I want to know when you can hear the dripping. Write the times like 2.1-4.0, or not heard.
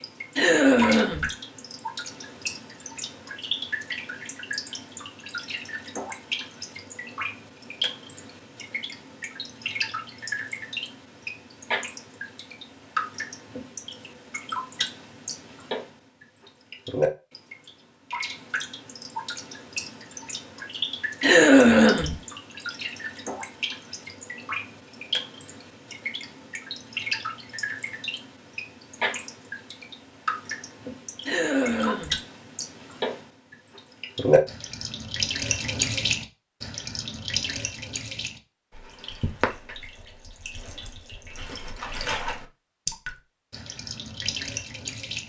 0.0-45.2.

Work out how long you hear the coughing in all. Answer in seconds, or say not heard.
3 s.